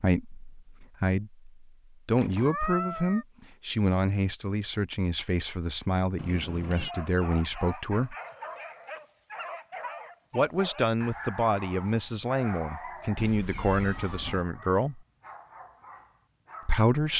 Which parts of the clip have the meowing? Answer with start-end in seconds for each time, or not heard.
2.1-3.2, 6.2-7.0, 13.2-14.4.